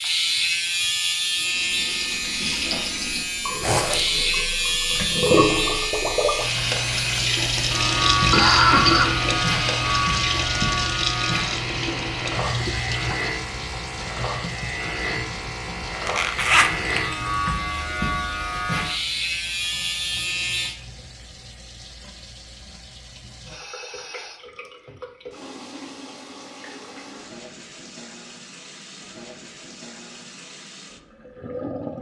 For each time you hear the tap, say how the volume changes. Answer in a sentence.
The tap can be heard from 1.5 to 31.9 s, getting quieter.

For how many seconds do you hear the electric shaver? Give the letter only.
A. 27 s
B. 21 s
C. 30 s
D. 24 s
B.